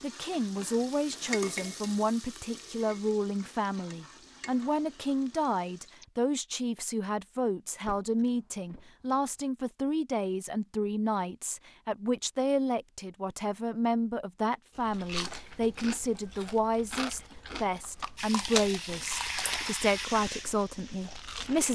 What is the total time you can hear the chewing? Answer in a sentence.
You can hear the chewing for 7 seconds altogether.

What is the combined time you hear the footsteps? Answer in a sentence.
The footsteps can't be heard in this clip.